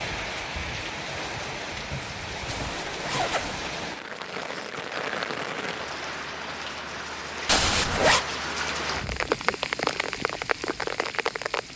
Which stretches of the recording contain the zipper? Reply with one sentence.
You can hear the zipper from 2.5 to 3.5 s and from 7.5 to 8.2 s.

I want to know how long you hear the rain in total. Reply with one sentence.
The rain can be heard for 12 seconds in total.